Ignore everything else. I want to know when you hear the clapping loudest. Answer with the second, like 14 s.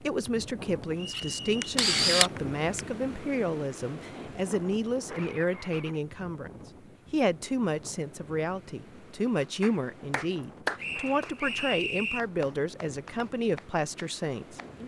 11 s.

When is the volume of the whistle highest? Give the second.
12 s.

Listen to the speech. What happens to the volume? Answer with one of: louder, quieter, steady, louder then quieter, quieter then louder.
steady.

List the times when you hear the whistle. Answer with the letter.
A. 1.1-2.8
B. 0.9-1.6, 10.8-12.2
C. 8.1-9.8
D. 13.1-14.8
B.